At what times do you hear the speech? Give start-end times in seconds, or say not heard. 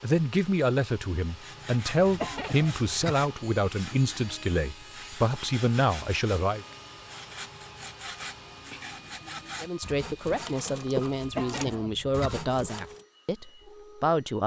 0.0-6.7, 9.6-14.4.